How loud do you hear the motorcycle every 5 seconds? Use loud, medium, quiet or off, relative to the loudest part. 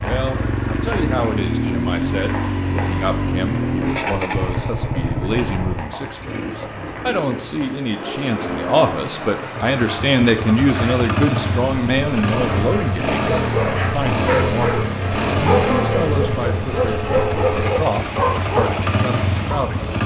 loud, medium, loud, loud.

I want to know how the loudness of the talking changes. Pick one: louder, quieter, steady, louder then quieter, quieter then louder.
louder then quieter.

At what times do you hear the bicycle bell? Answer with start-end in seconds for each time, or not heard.
not heard.